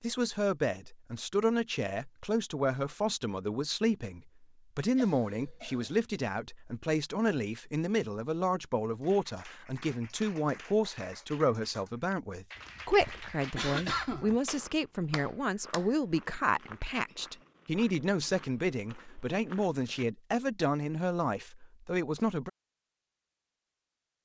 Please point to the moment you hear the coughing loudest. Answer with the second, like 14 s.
14 s.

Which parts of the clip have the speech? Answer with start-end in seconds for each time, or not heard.
0.0-22.5.